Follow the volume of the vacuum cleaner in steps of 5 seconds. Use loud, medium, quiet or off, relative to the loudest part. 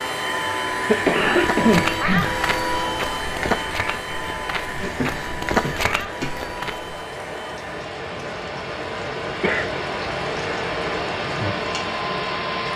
loud, medium, loud.